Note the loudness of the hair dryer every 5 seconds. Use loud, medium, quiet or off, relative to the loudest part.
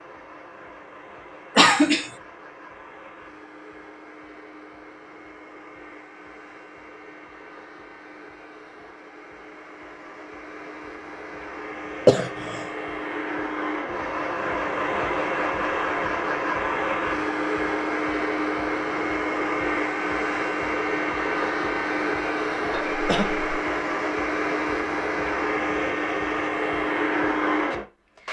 quiet, quiet, medium, loud, loud, loud.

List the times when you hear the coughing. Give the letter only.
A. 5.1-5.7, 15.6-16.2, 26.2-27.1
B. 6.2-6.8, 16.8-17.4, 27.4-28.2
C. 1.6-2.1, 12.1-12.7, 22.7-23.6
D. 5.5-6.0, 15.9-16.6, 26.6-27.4
C.